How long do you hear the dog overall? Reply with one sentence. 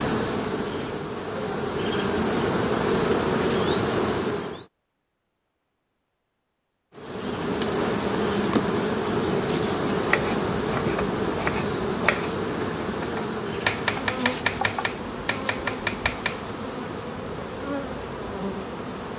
The dog can't be heard in this clip.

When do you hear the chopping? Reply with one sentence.
The chopping can be heard from 10.1 to 16.6 s.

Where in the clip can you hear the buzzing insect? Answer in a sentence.
You can hear the buzzing insect from 0.0 to 4.7 s and from 7.0 to 19.1 s.